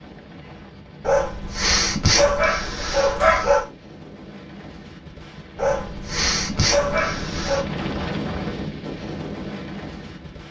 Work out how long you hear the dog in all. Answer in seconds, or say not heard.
5 s.